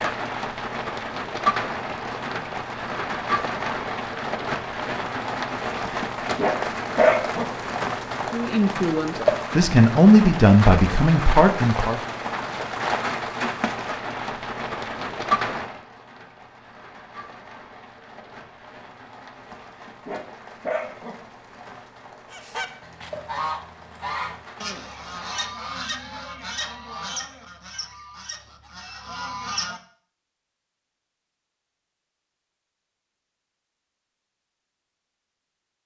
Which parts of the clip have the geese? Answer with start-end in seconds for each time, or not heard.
22.3-29.8.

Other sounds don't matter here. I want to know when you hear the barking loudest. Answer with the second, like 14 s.
7 s.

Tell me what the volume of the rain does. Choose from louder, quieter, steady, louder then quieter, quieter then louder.
quieter.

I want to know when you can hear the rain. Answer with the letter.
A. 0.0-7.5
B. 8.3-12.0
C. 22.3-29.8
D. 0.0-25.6
D.